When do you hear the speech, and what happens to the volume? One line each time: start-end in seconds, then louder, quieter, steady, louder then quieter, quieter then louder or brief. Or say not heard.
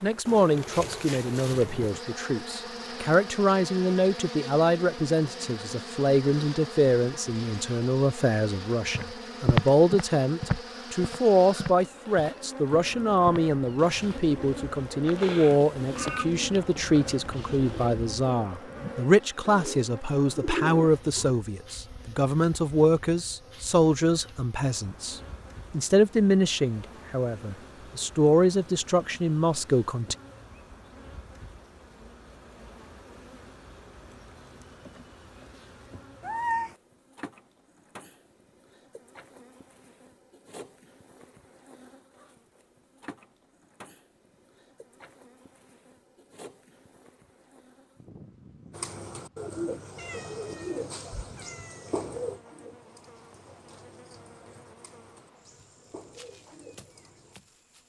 0.0-30.1 steady.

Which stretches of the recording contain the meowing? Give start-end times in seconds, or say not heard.
15.2-16.2, 36.2-36.8, 50.0-51.9.